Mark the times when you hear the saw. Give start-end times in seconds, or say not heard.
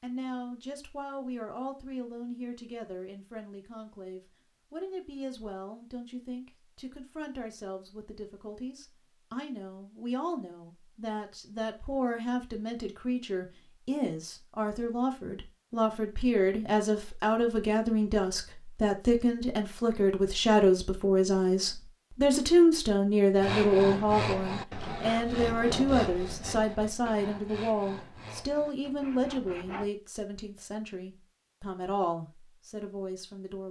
23.4-29.9.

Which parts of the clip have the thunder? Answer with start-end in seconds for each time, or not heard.
not heard.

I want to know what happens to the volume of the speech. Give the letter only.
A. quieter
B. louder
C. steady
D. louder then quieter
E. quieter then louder
D.